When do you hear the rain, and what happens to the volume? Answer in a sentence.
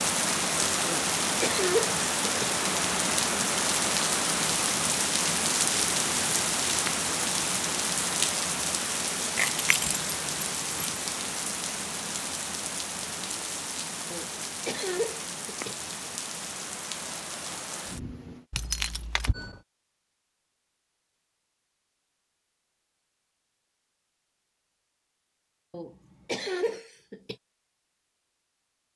The rain can be heard from 0.0 to 18.4 s, getting quieter.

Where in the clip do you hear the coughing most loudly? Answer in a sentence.
The volume of the coughing peaks at 2 seconds.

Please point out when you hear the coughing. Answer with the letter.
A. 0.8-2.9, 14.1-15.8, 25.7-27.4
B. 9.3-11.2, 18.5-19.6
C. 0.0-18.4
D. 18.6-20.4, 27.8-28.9
A.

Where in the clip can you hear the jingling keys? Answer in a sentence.
The jingling keys can be heard from 9.3 to 11.2 s and from 18.5 to 19.6 s.